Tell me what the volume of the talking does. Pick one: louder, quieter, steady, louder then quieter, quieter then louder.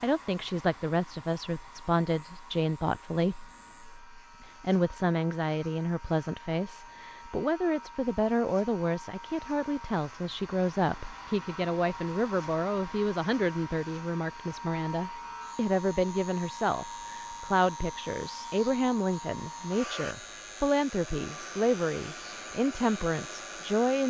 steady.